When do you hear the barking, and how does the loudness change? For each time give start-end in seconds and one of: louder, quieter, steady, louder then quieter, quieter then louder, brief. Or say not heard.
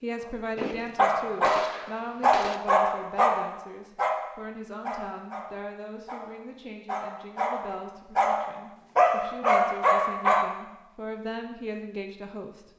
0.6-10.5 quieter then louder.